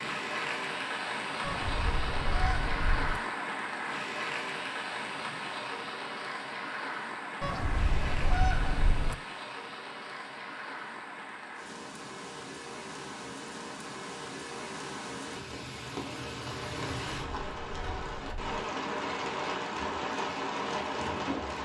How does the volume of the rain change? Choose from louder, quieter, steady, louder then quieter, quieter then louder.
quieter then louder.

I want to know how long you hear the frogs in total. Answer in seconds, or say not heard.
not heard.